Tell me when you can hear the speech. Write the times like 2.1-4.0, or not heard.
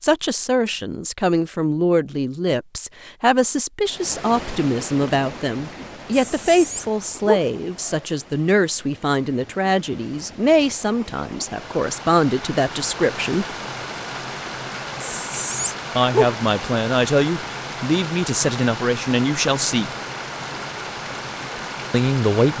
0.0-13.4, 15.9-19.9, 21.9-22.5.